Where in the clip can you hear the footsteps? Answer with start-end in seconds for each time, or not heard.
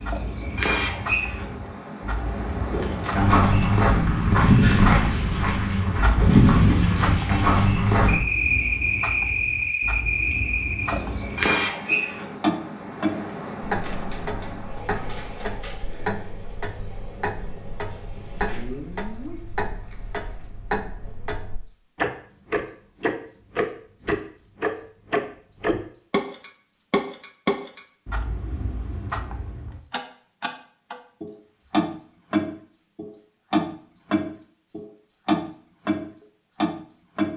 2.7-8.2.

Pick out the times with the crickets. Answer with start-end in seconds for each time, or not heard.
0.0-37.3.